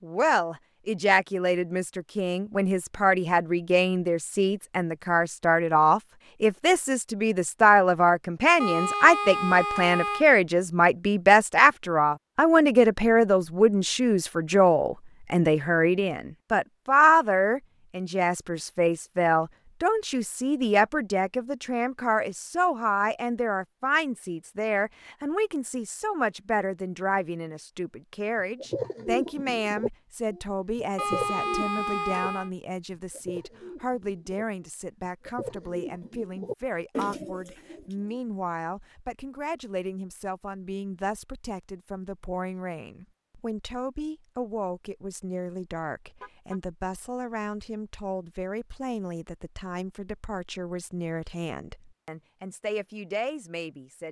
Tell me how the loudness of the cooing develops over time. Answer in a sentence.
The volume of the cooing goes down, then up.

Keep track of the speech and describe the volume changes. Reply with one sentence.
The loudness of the speech goes down.